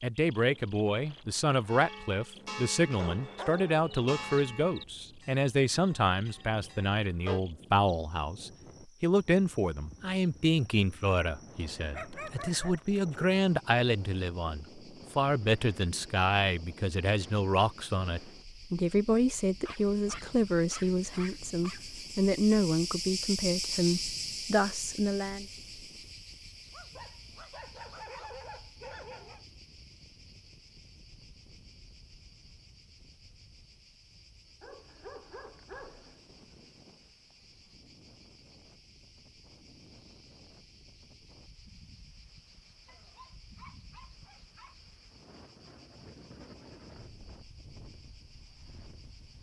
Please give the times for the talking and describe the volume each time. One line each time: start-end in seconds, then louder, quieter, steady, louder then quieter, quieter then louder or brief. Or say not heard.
0.0-25.4 steady.